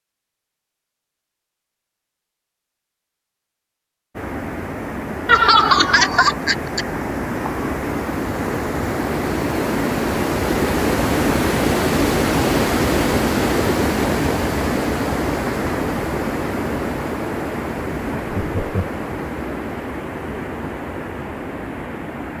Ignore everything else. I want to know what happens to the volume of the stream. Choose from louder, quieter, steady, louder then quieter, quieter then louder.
louder then quieter.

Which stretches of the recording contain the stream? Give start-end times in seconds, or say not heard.
4.2-22.3.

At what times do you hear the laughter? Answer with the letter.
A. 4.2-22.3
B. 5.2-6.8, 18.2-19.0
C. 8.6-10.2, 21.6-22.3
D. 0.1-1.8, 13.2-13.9
B.